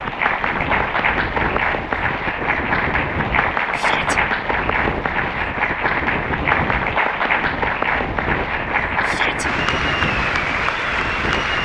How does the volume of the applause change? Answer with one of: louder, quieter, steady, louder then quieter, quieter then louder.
steady.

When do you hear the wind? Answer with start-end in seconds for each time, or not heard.
0.0-11.6.